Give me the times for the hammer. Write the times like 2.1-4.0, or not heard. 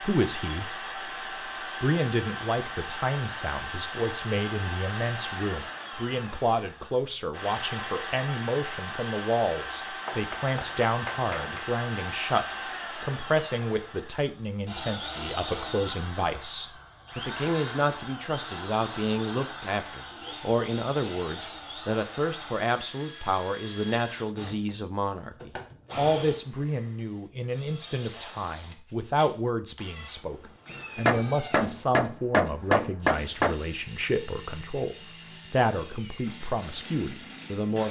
10.1-11.7, 30.7-33.5.